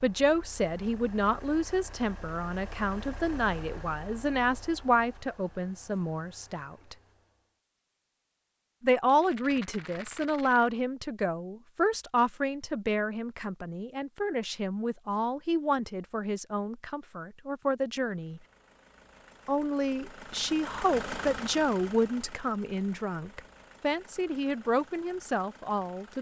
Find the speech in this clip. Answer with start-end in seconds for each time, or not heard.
0.0-7.0, 8.8-18.4, 19.4-26.1.